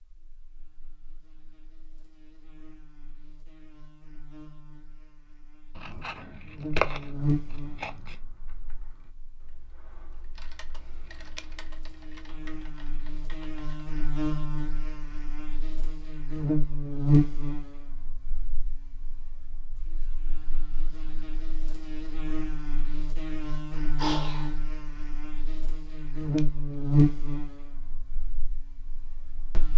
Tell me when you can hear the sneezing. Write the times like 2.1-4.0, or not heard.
23.8-24.6.